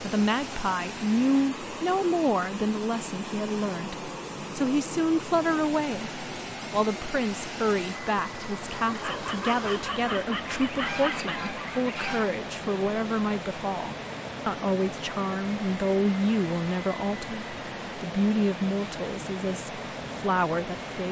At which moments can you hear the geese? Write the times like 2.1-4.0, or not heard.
10.4-12.3.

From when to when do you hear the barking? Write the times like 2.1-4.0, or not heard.
8.9-11.3.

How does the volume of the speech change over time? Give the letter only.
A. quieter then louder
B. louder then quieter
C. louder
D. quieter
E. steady
E.